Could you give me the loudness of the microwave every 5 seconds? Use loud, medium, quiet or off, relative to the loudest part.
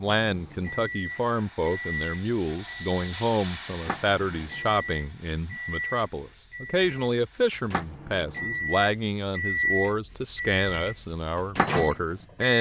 medium, loud, loud.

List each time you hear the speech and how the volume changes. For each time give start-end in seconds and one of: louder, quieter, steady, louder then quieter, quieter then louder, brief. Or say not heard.
0.0-12.5 steady.